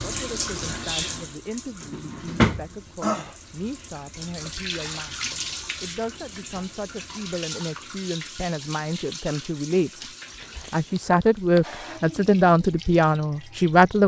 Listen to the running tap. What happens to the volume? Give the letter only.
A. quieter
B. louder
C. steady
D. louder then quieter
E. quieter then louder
A.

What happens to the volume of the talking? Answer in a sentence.
The loudness of the talking goes up.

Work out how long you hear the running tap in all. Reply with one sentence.
You can hear the running tap for 14 seconds altogether.